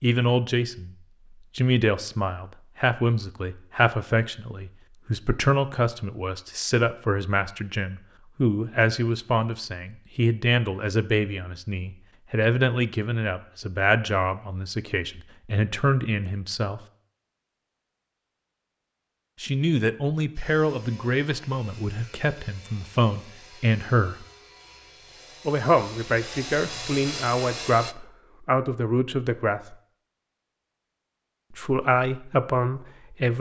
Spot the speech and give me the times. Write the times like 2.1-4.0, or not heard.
0.0-0.9, 1.6-16.8, 19.4-24.2, 25.4-29.8, 31.5-33.3.